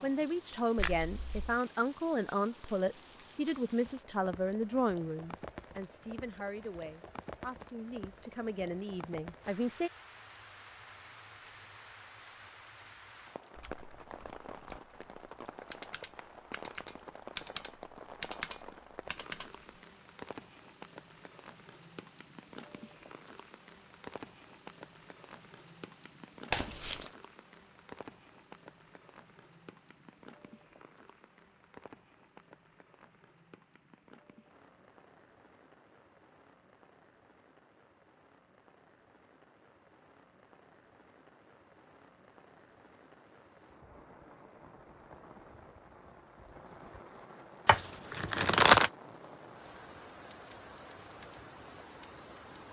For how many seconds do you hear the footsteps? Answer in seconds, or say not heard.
not heard.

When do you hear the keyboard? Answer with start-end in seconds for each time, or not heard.
13.6-19.5.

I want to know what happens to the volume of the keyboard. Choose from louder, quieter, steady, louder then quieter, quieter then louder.
louder.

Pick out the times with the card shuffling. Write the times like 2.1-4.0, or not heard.
0.8-1.6, 26.5-27.1, 47.6-48.9.